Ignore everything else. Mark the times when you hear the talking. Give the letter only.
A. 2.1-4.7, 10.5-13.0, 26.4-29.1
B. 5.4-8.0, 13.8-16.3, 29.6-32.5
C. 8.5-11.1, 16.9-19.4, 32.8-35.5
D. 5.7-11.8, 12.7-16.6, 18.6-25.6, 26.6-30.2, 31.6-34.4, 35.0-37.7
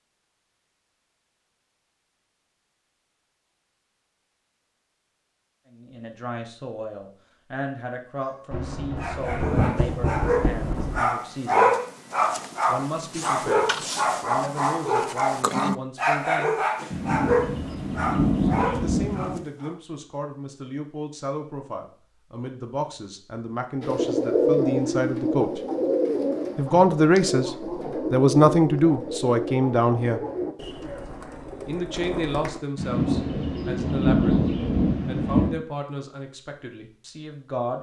D.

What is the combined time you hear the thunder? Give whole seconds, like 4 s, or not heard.
8 s.